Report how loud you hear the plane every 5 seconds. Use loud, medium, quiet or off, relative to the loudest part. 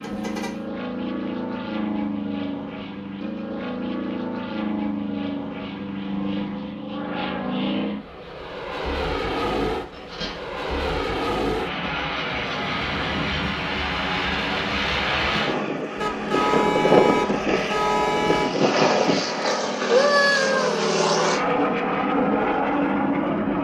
medium, medium, medium, loud, loud.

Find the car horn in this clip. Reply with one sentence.
The car horn can be heard from 0.0 to 0.7 s, from 9.7 to 10.6 s and from 15.9 to 18.5 s.